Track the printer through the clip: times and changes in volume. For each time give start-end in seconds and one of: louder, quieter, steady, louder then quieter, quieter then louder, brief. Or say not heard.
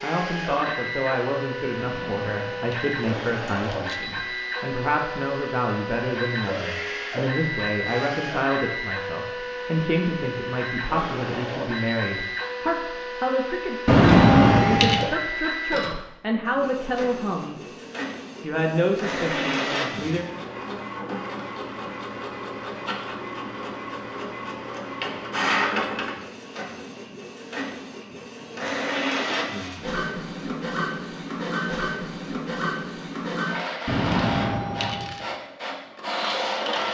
0.0-36.8 steady.